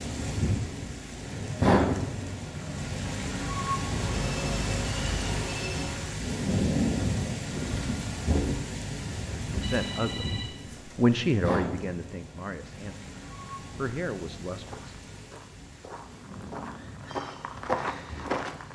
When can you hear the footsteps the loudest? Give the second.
18 s.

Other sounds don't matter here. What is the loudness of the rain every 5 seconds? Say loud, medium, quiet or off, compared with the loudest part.
loud, loud, medium, quiet.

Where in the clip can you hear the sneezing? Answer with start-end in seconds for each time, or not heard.
not heard.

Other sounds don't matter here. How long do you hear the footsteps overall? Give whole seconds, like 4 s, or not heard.
4 s.